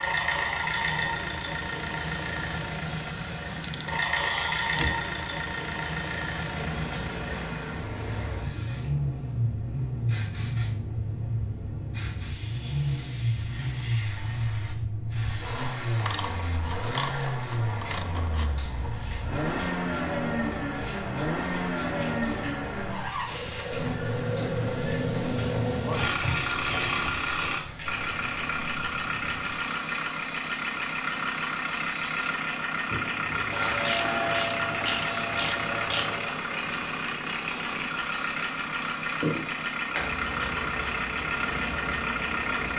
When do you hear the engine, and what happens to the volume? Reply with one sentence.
The engine can be heard from 0.0 to 42.7 s, at a steady volume.